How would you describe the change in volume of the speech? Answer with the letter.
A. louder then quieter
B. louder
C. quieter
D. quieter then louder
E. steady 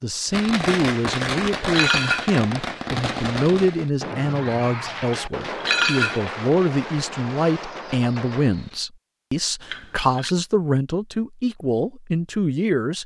E.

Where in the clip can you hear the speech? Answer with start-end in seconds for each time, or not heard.
0.0-13.0.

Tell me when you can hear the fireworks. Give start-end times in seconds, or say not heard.
0.3-8.8.